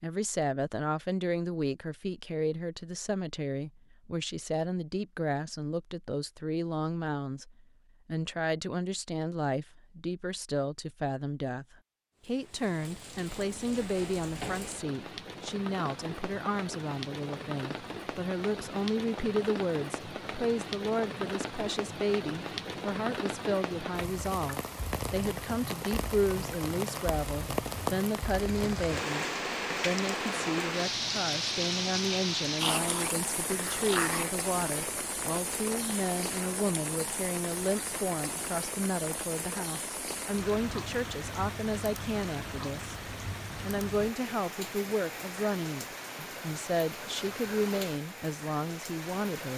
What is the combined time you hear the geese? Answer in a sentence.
You can't hear the geese here.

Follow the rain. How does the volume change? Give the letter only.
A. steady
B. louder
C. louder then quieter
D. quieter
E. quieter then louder
C.